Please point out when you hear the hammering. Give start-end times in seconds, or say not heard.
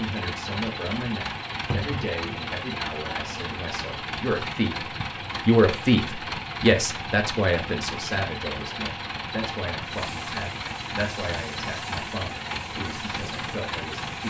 not heard.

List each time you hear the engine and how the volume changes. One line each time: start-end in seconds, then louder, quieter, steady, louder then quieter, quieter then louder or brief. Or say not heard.
0.0-14.2 steady.